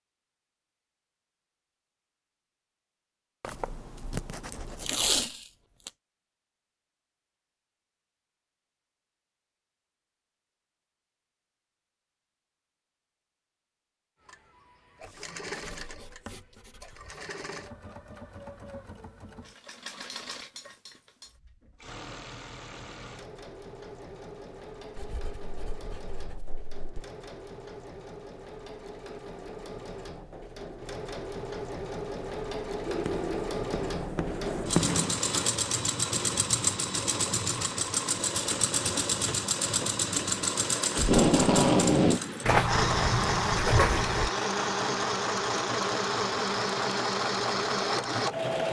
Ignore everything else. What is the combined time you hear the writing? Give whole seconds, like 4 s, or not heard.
10 s.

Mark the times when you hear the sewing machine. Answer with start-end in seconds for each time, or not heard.
14.2-48.6.